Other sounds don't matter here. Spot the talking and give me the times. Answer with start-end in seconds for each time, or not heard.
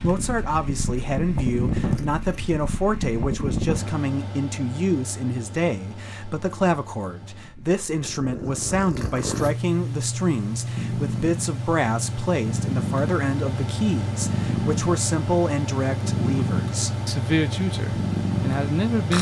0.0-19.1.